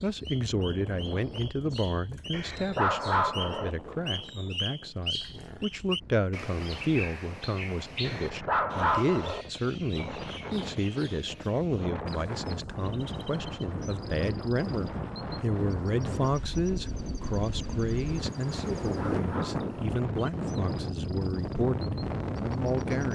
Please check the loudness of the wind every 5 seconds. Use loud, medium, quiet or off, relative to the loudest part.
quiet, quiet, medium, loud, loud.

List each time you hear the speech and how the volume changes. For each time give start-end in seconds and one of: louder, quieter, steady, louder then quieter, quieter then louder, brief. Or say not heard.
0.0-23.1 steady.